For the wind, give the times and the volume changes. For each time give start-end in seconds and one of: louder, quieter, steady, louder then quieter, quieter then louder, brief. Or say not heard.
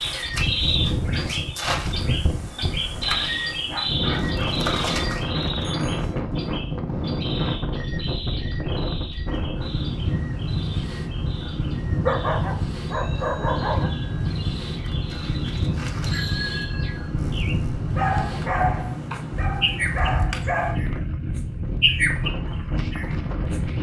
0.0-23.7 steady.